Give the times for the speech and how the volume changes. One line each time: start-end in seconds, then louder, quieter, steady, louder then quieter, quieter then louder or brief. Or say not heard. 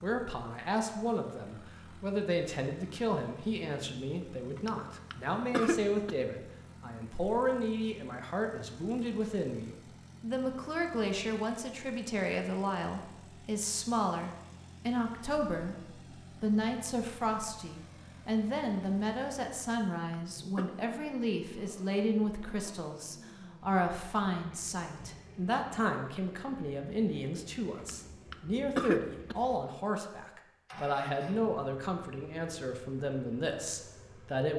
0.0-15.8 steady
16.4-34.5 steady.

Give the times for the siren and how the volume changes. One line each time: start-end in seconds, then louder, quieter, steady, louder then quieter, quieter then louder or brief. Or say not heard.
not heard.